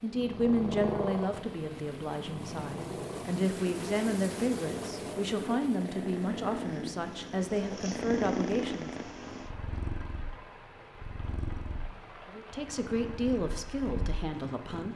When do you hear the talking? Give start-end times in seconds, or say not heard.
0.0-8.9, 12.2-14.9.